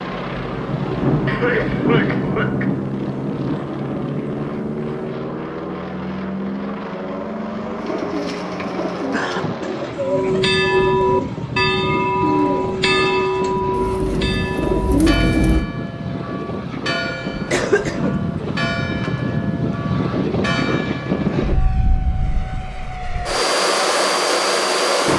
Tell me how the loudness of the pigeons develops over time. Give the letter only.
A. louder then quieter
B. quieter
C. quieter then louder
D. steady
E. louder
E.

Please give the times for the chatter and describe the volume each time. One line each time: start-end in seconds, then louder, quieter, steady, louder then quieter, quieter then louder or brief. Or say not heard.
not heard.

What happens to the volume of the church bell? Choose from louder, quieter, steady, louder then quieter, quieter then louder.
quieter.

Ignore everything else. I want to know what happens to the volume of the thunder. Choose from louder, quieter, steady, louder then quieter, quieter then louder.
quieter.